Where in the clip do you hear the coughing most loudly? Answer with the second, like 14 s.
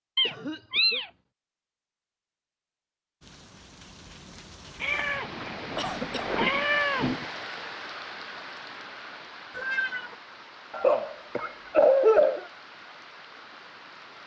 12 s.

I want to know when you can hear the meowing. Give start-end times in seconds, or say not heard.
0.1-1.1, 4.8-7.2, 9.5-10.2.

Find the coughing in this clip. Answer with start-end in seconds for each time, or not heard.
0.2-1.1, 5.8-6.3, 10.7-12.4.